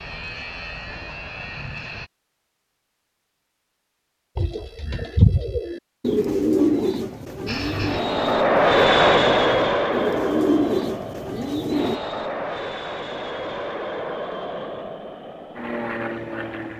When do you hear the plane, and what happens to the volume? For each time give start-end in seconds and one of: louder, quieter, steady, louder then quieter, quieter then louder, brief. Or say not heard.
0.0-2.1 brief
7.5-16.7 quieter.